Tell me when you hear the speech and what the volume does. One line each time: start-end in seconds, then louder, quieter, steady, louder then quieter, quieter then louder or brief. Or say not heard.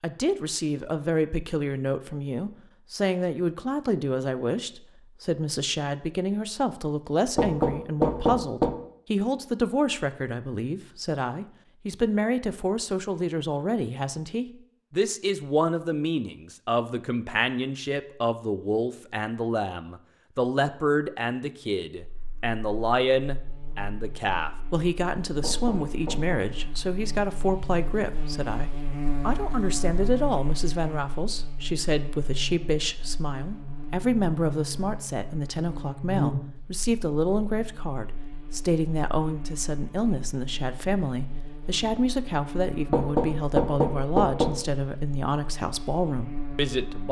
0.0-47.0 steady.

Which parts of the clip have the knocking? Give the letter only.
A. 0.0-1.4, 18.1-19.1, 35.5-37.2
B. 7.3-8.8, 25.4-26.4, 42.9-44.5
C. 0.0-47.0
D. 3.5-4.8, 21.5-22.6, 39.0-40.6
B.